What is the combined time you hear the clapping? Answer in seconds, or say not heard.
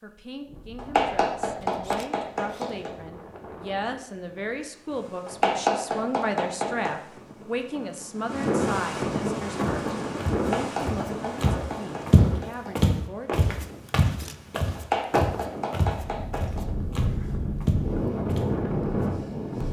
8 s.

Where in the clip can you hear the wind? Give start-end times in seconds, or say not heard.
0.2-19.6.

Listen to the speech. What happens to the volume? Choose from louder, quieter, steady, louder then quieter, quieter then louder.
louder then quieter.